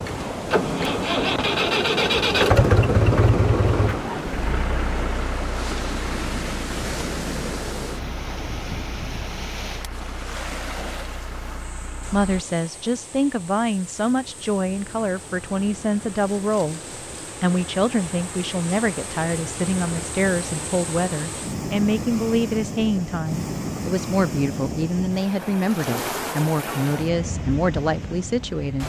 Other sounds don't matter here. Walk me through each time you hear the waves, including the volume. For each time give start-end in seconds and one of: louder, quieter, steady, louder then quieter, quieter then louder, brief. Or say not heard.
0.0-28.8 quieter then louder.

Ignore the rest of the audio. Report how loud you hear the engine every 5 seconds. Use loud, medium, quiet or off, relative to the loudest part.
loud, quiet, quiet, off, off, off.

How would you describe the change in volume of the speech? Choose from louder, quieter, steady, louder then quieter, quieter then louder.
steady.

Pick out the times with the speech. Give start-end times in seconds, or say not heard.
12.1-16.8, 17.4-28.8.